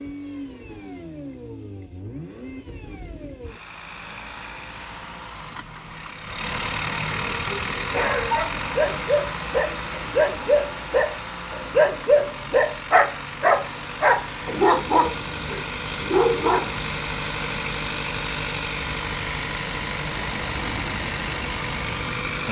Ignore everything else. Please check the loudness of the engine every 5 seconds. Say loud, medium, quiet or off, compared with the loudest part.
medium, loud, medium, loud, loud.